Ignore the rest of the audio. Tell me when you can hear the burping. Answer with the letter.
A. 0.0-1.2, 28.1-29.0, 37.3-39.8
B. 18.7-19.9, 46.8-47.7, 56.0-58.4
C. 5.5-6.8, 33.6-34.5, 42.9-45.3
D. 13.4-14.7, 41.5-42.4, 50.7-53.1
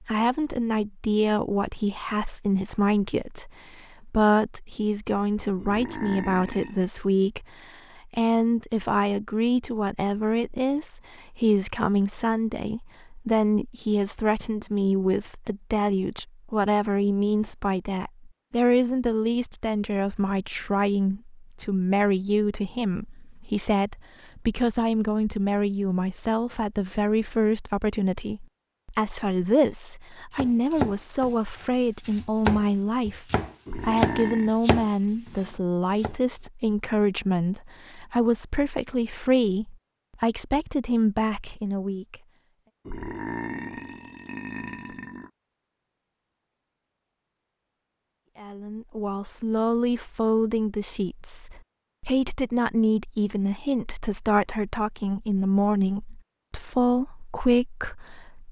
C.